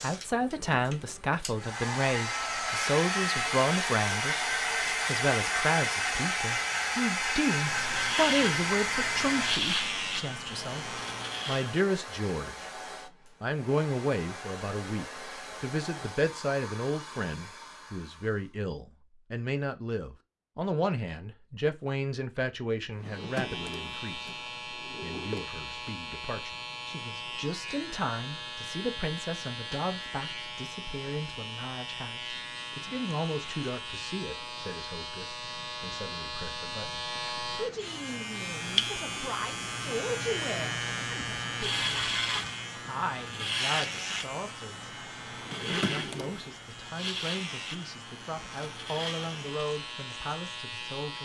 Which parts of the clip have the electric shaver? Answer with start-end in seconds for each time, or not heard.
7.5-11.8, 23.1-51.2.